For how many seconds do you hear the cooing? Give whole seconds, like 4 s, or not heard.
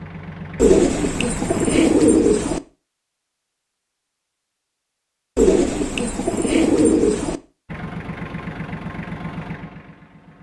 4 s.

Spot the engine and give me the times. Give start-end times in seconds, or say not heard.
0.0-1.9, 7.7-10.3.